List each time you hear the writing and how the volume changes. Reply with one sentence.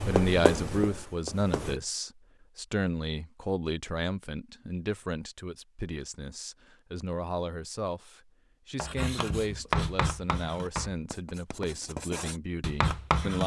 The writing can be heard briefly from 0.0 to 1.8 s; and from 8.8 to 13.4 s, getting quieter then louder.